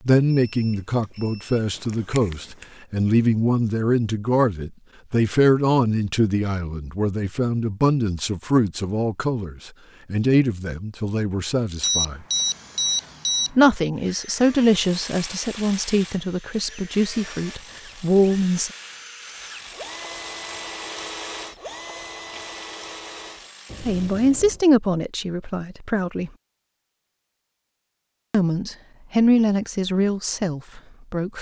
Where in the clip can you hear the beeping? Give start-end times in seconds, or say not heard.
0.5-2.6, 11.8-13.7, 23.6-24.6.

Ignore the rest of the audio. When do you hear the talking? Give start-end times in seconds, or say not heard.
0.1-12.2, 13.6-18.7, 23.8-26.3, 28.3-31.3.